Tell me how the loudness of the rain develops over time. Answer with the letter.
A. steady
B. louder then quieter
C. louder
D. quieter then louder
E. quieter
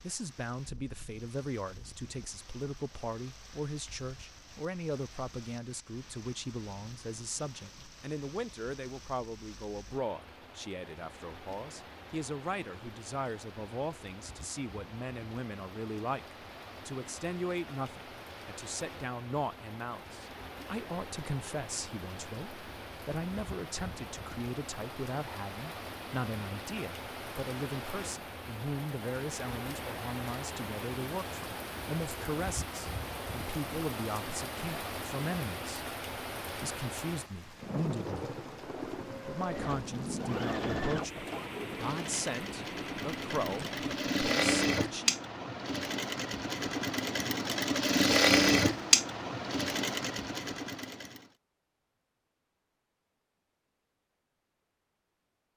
C.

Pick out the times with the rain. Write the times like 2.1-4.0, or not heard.
0.0-44.0.